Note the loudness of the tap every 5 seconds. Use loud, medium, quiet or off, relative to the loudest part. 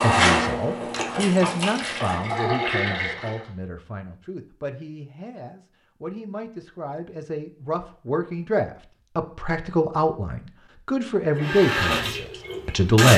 loud, off, loud.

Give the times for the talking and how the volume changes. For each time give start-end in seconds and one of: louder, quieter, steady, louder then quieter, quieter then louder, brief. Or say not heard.
0.0-13.1 quieter then louder.